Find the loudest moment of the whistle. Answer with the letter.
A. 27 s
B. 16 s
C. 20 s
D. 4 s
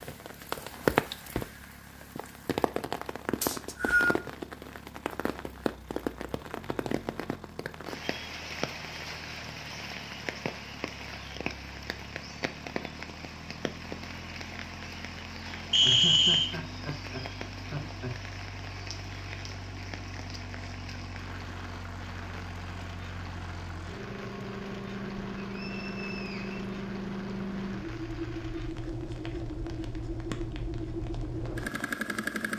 B.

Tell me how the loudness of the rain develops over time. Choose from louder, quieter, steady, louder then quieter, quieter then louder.
quieter.